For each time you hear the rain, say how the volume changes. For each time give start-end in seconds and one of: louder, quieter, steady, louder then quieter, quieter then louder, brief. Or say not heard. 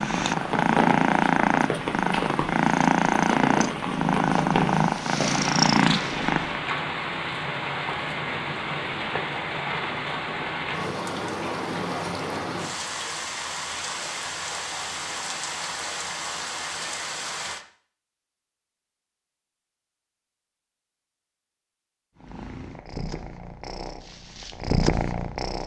0.1-17.6 steady.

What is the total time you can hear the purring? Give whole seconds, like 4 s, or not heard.
10 s.